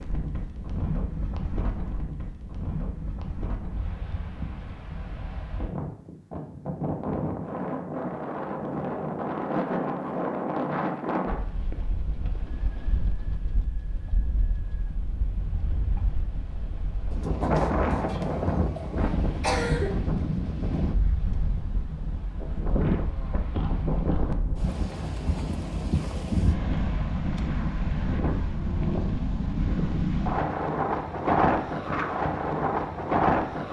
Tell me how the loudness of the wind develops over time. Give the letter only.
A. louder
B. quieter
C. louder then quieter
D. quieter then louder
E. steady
A.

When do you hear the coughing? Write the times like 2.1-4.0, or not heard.
18.8-20.0.